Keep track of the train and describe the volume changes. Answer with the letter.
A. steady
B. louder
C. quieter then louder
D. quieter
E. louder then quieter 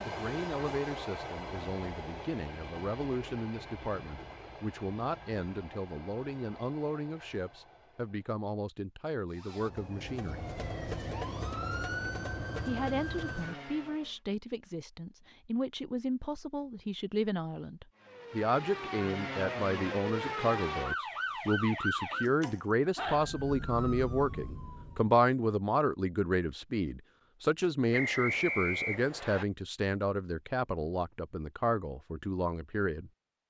D.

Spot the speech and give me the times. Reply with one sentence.
The speech can be heard from 0.0 to 10.4 s and from 12.7 to 33.1 s.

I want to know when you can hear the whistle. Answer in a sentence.
You can hear the whistle from 27.9 to 29.4 s.